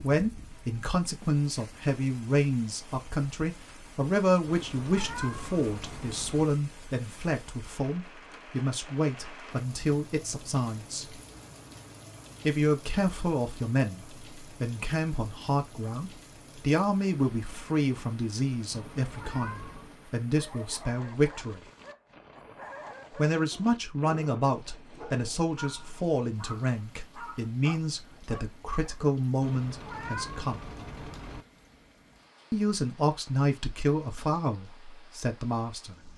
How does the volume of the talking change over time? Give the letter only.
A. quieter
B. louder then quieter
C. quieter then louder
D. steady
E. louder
D.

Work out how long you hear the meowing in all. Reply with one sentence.
You can hear the meowing for 5 seconds altogether.